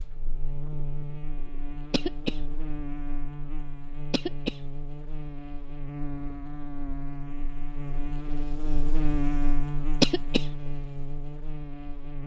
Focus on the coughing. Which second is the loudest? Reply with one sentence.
The volume of the coughing peaks at 10 seconds.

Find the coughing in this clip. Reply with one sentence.
You can hear the coughing from 1.9 to 2.4 s, from 4.1 to 4.6 s and from 10.0 to 10.4 s.